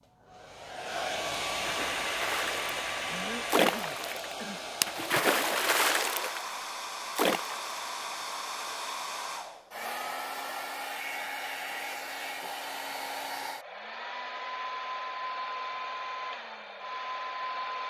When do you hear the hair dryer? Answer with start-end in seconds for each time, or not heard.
0.0-17.8.